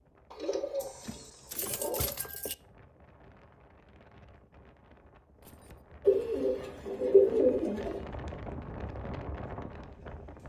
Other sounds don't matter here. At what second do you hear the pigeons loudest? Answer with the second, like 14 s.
7 s.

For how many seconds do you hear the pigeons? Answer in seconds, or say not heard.
4 s.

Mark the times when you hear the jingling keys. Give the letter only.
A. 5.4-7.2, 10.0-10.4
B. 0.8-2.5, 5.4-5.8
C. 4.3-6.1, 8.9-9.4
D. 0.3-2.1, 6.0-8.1
B.